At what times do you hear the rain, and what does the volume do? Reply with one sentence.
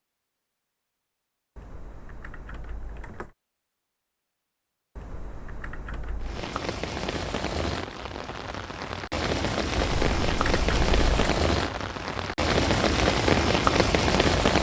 The rain can be heard from 6.2 to 14.5 s, getting louder.